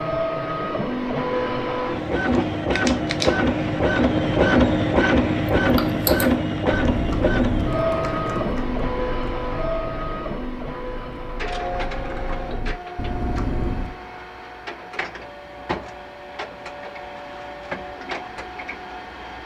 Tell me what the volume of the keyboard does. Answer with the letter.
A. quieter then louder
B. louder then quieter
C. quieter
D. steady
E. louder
A.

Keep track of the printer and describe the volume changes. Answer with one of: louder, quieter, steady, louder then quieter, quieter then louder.
quieter.